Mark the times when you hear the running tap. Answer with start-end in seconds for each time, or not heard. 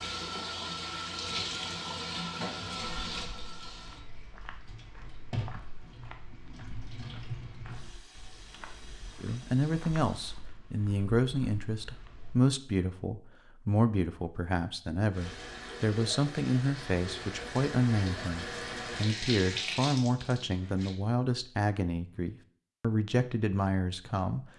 0.0-10.4, 15.1-20.9.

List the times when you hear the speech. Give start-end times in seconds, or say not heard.
9.2-24.5.